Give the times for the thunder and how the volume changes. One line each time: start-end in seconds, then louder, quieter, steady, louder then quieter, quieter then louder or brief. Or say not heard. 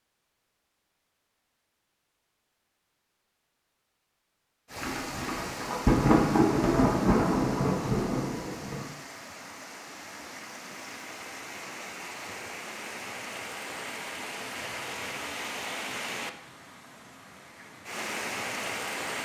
4.8-8.8 louder then quieter.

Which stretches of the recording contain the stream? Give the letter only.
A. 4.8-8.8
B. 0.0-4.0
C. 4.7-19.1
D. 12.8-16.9
C.